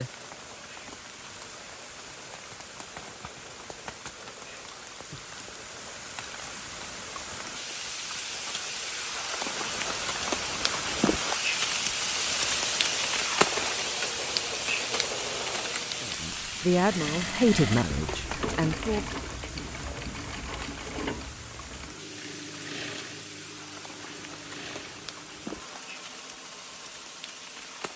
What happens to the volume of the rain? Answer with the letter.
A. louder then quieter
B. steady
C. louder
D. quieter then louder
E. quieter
A.